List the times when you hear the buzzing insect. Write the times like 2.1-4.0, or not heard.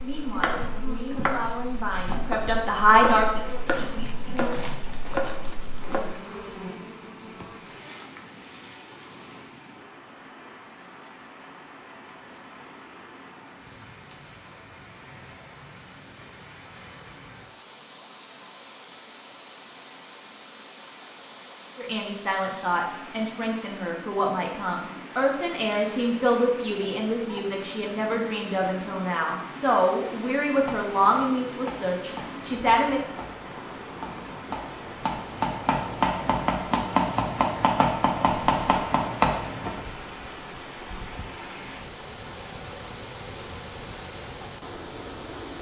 0.0-9.5.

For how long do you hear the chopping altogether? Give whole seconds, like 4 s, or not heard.
15 s.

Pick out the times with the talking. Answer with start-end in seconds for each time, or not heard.
0.0-3.4, 21.8-33.0.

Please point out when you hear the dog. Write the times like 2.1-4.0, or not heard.
not heard.